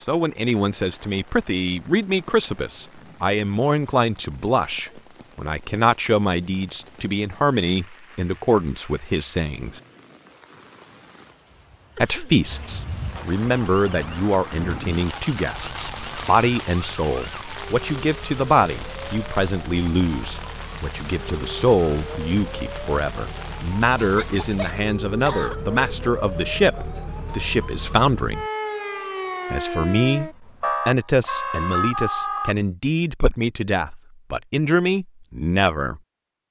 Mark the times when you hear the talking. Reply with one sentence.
The talking can be heard from 0.1 to 9.8 s, from 11.9 to 28.4 s and from 29.5 to 36.0 s.